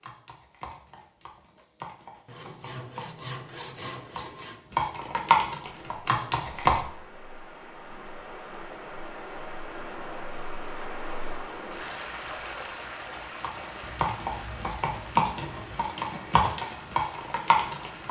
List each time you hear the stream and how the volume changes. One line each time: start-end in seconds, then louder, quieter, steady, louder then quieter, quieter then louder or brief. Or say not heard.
5.7-18.0 louder then quieter.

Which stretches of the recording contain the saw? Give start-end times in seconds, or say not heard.
2.2-4.7, 13.8-15.8.